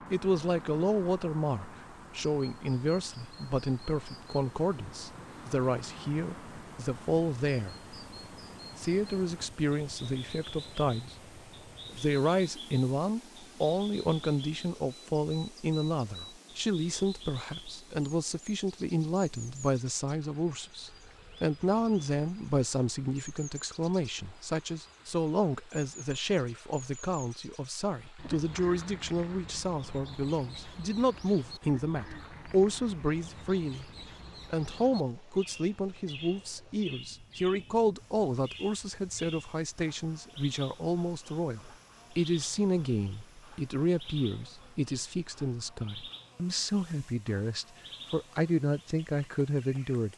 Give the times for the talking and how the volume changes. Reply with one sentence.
You can hear the talking from 0.1 to 7.8 s, at a steady volume; briefly from 8.8 to 11.2 s; and from 11.9 to 50.1 s, at a steady volume.